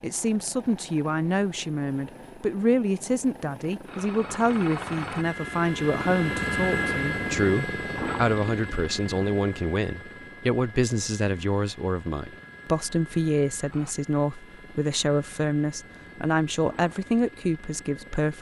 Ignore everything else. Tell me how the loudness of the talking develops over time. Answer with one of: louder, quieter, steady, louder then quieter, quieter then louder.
steady.